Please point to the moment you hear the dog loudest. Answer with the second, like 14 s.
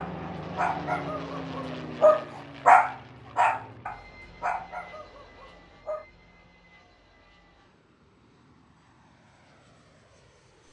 3 s.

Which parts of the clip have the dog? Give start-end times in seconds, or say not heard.
0.0-6.0.